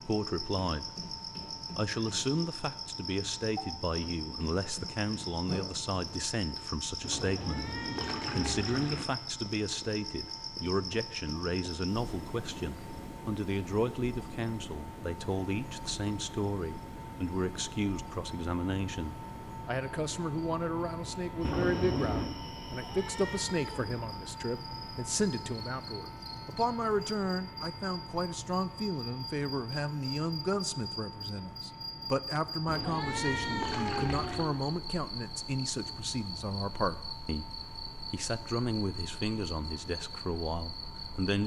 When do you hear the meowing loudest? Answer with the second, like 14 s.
33 s.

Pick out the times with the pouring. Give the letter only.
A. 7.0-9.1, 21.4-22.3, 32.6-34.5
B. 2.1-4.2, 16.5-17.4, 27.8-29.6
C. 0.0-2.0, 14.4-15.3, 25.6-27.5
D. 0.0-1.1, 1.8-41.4
A.